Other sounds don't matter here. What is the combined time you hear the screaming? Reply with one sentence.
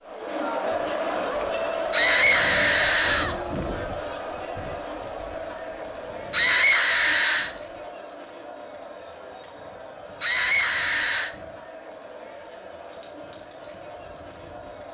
The screaming can be heard for 4 seconds in total.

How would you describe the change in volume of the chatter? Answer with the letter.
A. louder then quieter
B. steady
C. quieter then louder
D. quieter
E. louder
D.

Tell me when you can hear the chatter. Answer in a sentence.
You can hear the chatter from 0.0 to 14.8 s.